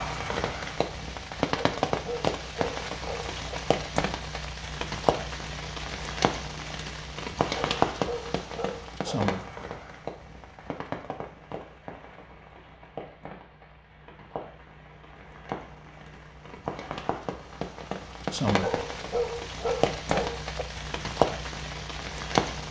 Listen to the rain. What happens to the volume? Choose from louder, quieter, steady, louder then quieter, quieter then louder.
quieter then louder.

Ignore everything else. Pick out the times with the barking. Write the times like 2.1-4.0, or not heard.
1.6-3.5, 7.5-9.3, 18.6-20.6.